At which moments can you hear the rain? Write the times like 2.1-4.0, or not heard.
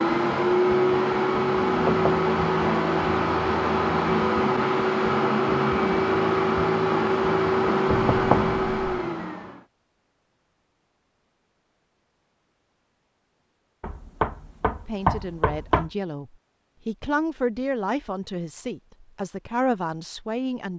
not heard.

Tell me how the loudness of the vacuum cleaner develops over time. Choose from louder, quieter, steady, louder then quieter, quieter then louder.
steady.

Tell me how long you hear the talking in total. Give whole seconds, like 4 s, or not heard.
6 s.